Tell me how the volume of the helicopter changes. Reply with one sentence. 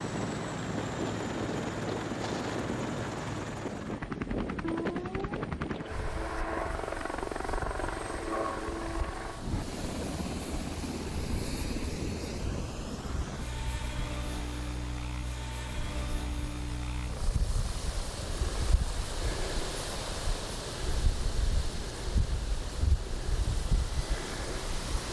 The loudness of the helicopter goes down.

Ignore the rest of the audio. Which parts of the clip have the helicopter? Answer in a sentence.
You can hear the helicopter from 0.0 to 25.0 s.